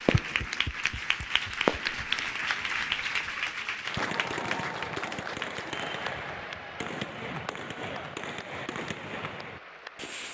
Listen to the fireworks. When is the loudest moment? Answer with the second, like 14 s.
2 s.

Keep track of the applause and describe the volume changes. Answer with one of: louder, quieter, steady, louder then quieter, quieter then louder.
quieter.